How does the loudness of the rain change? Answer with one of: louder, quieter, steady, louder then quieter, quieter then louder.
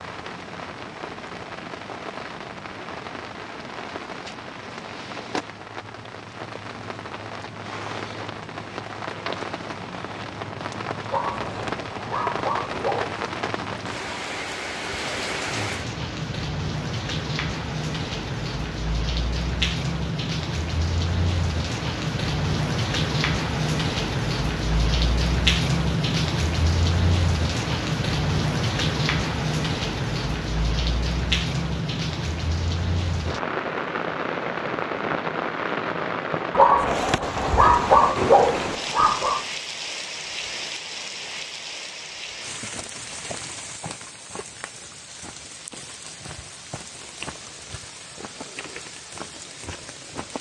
louder then quieter.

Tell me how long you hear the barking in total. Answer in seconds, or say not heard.
5 s.